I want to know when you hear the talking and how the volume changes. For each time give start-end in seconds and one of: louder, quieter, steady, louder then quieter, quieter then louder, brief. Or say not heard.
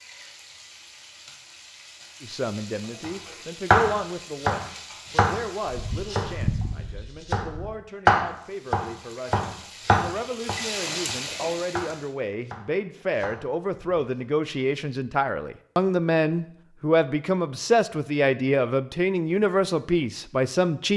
2.2-20.9 quieter then louder.